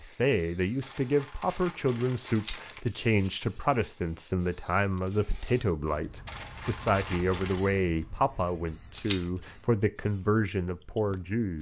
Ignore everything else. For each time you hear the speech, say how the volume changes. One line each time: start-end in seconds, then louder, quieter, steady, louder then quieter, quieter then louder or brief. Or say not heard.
0.0-11.5 steady.